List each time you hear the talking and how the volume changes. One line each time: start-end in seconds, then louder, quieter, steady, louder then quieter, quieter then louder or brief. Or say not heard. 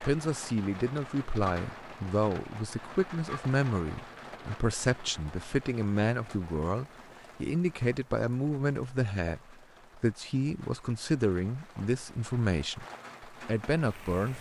0.0-14.3 steady.